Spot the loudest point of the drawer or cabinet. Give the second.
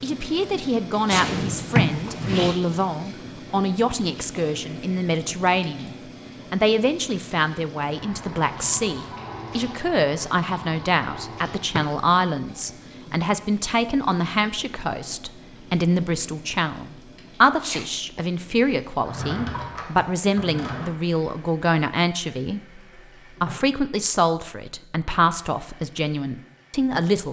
2 s.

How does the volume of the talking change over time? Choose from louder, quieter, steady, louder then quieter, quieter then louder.
steady.